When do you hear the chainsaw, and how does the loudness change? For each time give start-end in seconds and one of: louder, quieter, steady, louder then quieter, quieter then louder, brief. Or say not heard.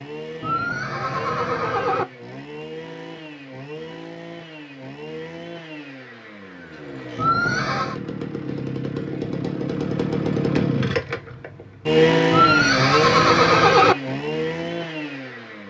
0.0-15.6 louder.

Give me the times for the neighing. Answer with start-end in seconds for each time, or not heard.
0.4-2.0, 7.2-8.0, 12.3-13.9.